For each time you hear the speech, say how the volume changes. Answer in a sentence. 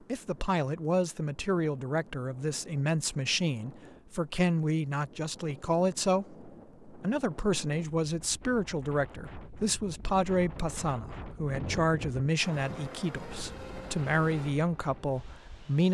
You can hear the speech from 0.1 to 15.8 s, at a steady volume.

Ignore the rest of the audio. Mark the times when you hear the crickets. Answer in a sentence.
You can't hear the crickets here.